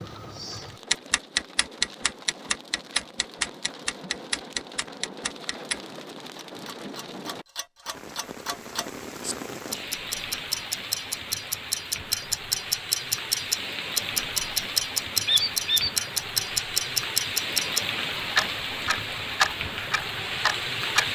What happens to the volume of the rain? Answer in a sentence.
The volume of the rain goes up.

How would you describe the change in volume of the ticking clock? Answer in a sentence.
The volume of the ticking clock goes down, then up.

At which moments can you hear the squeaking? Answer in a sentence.
The squeaking can be heard from 15.2 to 15.9 s.